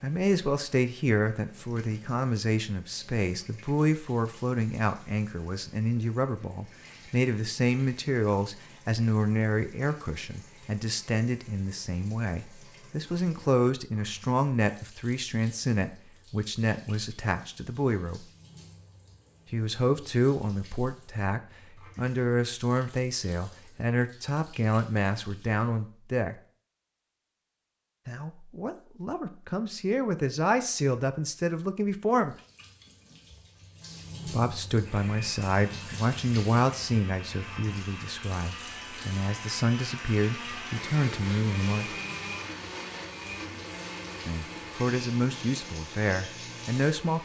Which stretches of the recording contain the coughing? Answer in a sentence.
The coughing can't be heard in this clip.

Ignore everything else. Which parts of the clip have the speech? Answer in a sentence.
You can hear the speech from 0.0 to 18.2 s, from 19.5 to 26.4 s, from 28.1 to 32.4 s, from 34.2 to 42.0 s and from 44.2 to 47.2 s.